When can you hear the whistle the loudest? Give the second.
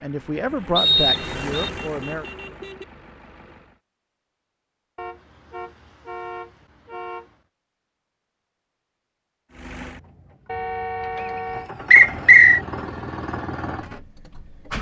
12 s.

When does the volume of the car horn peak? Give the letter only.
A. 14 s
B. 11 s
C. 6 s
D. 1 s
B.